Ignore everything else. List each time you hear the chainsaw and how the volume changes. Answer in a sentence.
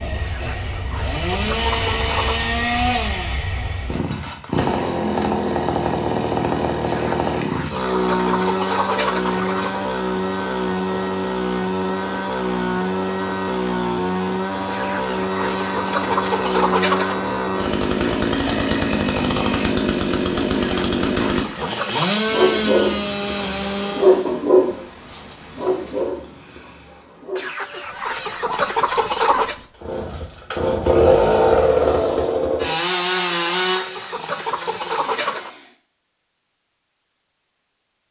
You can hear the chainsaw from 0.0 to 24.4 s, at a steady volume; and from 29.8 to 35.8 s, getting quieter.